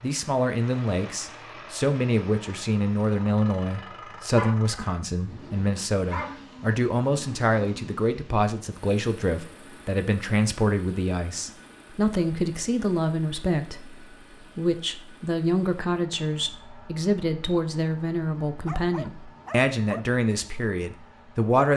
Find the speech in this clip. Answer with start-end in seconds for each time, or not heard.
0.0-21.7.